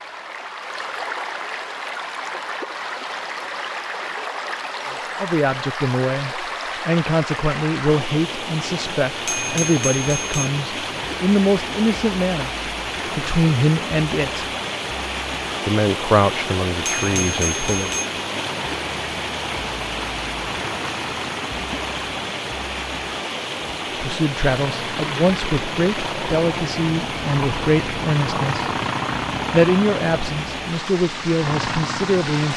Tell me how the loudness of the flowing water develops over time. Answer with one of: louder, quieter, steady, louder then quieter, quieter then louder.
steady.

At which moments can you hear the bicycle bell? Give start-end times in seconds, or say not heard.
9.1-10.5, 16.8-18.1.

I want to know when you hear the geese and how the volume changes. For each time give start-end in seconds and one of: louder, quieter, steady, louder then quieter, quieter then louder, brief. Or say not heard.
not heard.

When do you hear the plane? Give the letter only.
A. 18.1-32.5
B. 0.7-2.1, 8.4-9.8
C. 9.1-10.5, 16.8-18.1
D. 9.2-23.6
A.